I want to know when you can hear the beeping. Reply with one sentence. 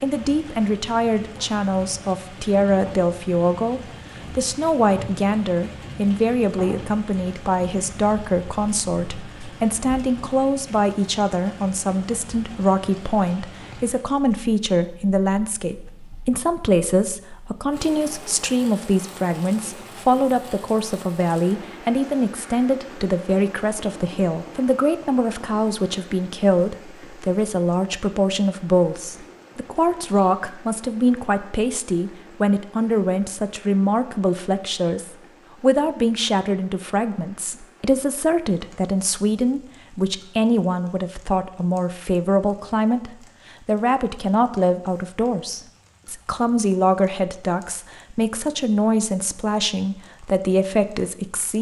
The beeping can't be heard in this clip.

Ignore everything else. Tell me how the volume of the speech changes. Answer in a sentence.
The volume of the speech stays about the same.